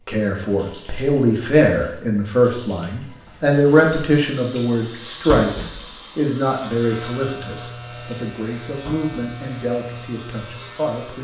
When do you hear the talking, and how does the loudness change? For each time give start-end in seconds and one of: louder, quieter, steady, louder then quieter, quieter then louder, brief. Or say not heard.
0.1-11.1 quieter.